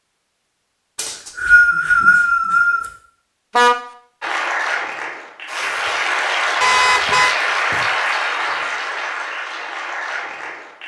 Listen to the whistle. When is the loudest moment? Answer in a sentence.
The volume of the whistle peaks at 2 seconds.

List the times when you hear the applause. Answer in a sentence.
The applause can be heard from 4.2 to 10.8 s.